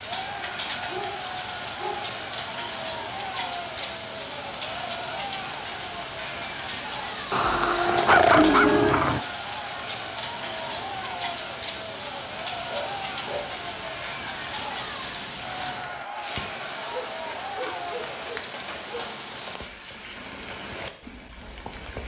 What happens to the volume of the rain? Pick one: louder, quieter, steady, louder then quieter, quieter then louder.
steady.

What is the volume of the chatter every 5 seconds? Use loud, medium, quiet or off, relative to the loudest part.
loud, loud, loud, loud, off.